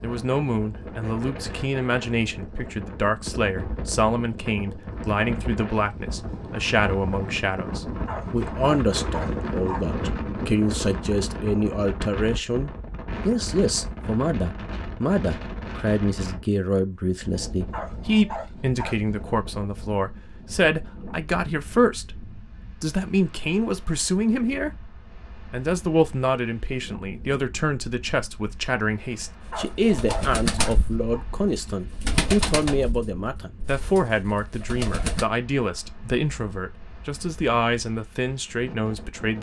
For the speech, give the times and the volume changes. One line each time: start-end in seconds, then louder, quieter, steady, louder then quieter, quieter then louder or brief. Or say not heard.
0.0-39.3 steady.